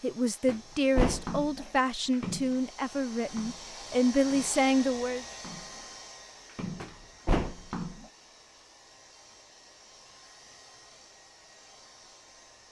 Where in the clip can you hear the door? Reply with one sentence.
You can hear the door from 0.5 to 1.3 s and from 6.8 to 7.7 s.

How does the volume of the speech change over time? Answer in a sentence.
The loudness of the speech goes down, then up.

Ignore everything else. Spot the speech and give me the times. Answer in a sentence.
The speech can be heard from 0.0 to 5.2 s.